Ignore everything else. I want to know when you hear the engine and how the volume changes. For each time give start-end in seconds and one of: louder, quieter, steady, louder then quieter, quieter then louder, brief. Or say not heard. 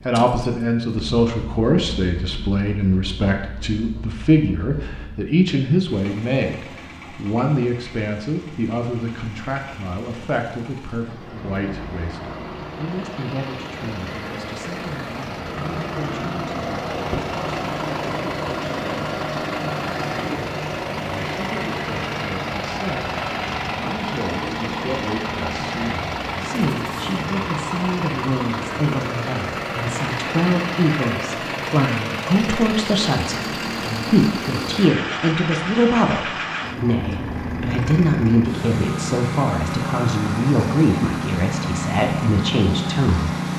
0.0-43.5 louder.